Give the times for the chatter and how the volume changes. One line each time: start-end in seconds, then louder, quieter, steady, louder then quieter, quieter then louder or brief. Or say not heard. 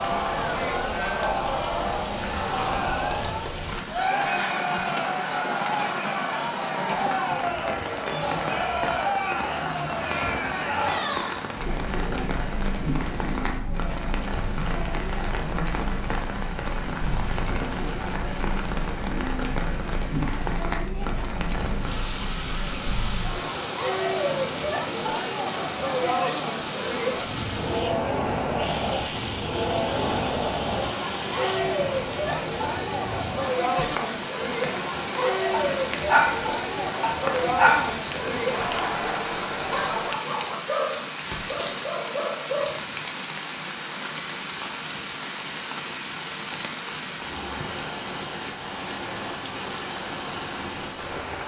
0.0-40.1 quieter then louder.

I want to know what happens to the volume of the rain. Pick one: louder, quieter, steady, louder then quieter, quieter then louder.
steady.